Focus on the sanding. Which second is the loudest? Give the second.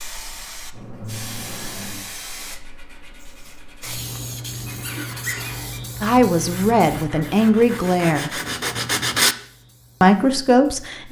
9 s.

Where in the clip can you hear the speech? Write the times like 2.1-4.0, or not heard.
6.0-8.3, 10.0-11.0.